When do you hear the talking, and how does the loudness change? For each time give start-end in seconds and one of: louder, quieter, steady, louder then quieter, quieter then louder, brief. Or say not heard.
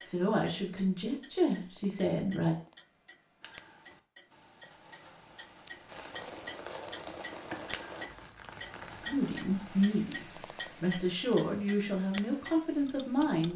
0.0-2.5 brief
9.0-13.5 steady.